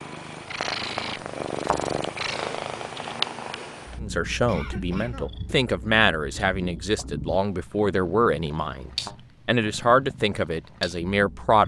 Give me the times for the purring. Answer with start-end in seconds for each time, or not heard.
0.0-11.6.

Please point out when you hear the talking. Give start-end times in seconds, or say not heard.
4.0-11.6.